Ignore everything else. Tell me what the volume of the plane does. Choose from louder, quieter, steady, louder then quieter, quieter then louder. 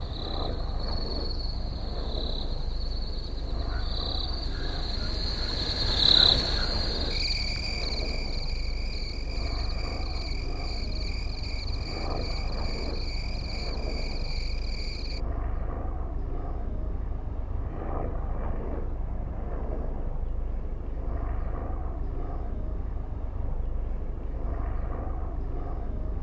steady.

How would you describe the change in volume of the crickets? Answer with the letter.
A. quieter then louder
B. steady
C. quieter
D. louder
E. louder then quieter
E.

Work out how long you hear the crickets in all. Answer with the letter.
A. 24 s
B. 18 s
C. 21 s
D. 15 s
D.